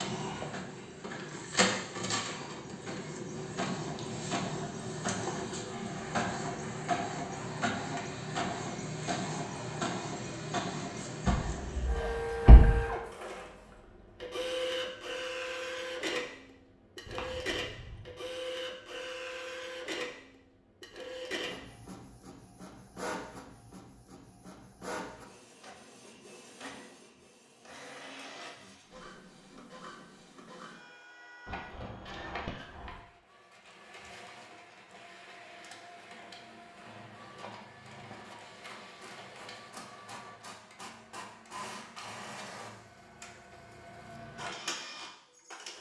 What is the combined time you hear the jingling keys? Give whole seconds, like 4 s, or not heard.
4 s.